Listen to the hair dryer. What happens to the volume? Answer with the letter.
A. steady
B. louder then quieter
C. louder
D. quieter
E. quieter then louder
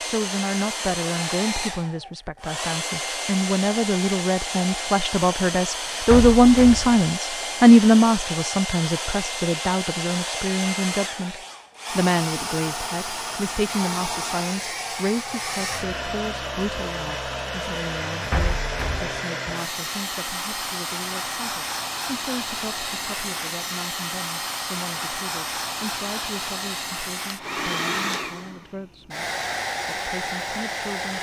A.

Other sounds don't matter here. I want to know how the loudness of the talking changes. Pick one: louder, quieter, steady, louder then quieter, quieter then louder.
quieter.